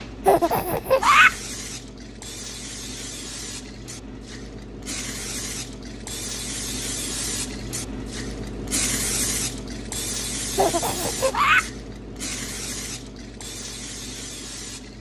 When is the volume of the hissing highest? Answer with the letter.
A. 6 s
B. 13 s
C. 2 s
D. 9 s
D.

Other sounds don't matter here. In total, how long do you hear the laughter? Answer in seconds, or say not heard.
2 s.